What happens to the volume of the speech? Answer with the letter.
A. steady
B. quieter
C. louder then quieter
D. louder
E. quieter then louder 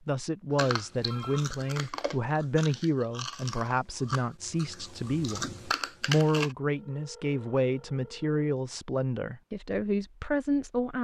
A.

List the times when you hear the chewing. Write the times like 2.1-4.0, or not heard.
0.6-6.5.